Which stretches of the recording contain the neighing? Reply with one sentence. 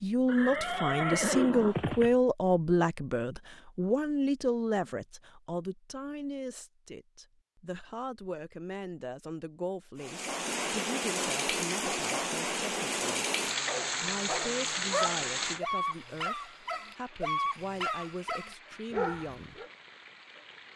You can hear the neighing from 0.2 to 2.1 s.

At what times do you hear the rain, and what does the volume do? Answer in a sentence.
You can hear the rain from 9.9 to 20.7 s, getting quieter.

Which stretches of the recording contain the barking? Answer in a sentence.
You can hear the barking from 13.7 to 19.7 s.